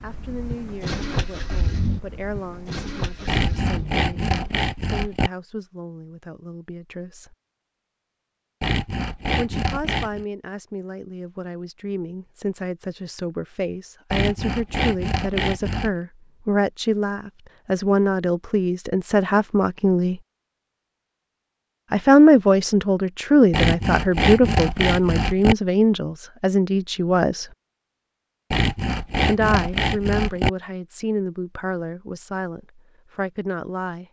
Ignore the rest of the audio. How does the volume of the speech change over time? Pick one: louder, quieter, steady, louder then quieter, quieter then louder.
louder then quieter.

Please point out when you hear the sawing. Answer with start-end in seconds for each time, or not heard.
3.2-5.3, 8.6-10.2, 14.1-15.9, 23.5-25.6, 28.5-30.5.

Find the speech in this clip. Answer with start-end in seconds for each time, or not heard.
0.0-7.3, 9.3-20.2, 21.9-27.5, 29.2-34.0.